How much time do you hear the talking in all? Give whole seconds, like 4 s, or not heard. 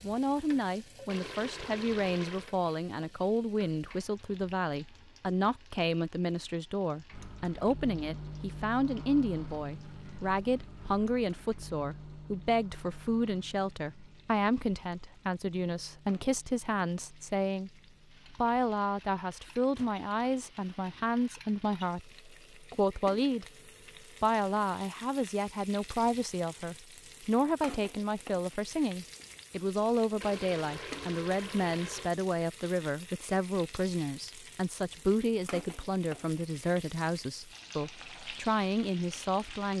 38 s.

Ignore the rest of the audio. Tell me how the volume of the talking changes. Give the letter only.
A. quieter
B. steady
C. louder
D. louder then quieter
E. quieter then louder
B.